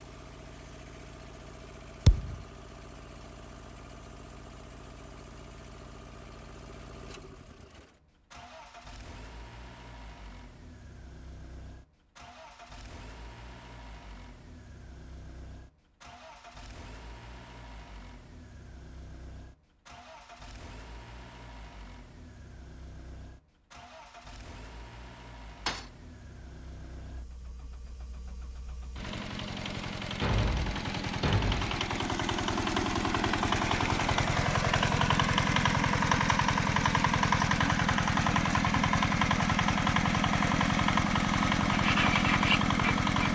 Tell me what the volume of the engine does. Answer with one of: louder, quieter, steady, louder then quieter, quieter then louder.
louder.